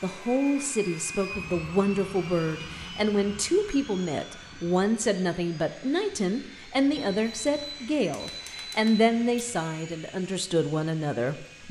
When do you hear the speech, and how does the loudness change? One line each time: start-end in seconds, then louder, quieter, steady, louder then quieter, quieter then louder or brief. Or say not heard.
0.0-11.6 steady.